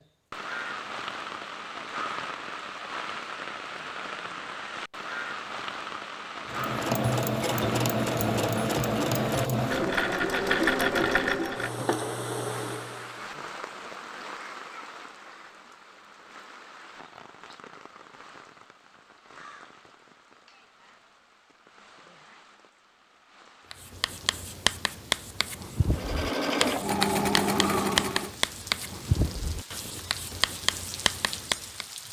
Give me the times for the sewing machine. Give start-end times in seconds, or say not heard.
6.5-13.2, 25.9-28.4.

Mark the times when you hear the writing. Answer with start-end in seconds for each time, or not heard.
23.7-31.9.